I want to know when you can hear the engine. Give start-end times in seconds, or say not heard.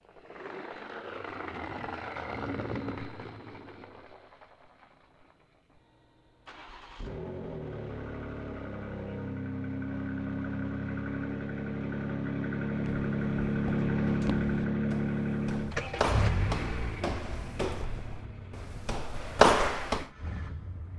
0.0-20.9.